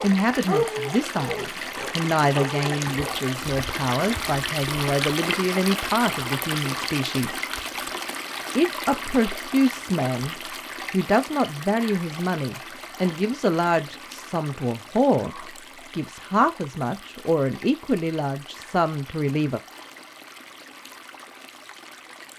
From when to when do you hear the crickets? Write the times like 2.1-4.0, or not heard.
not heard.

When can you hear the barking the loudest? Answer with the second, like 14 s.
1 s.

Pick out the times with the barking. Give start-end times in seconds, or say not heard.
0.0-3.1.